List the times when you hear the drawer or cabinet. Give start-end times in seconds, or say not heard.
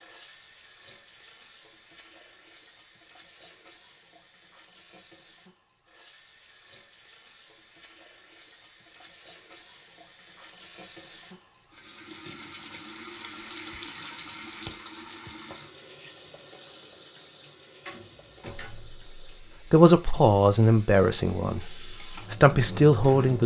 17.8-19.1.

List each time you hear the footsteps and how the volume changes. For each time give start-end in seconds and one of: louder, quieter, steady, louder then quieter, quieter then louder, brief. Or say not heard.
not heard.